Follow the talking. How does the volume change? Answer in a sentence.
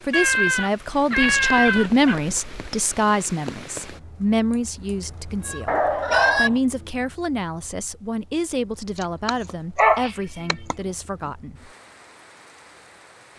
The loudness of the talking goes down.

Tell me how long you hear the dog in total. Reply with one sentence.
You can hear the dog for 4 seconds altogether.